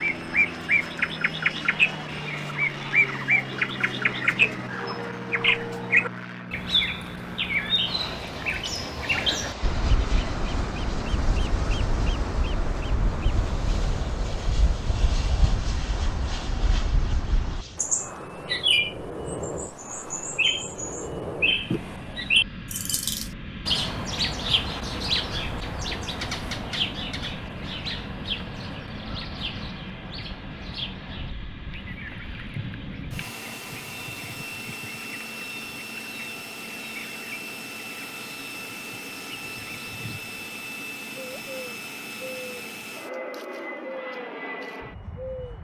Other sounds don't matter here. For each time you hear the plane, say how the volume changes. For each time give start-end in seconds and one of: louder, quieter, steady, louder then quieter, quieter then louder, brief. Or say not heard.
0.0-45.5 steady.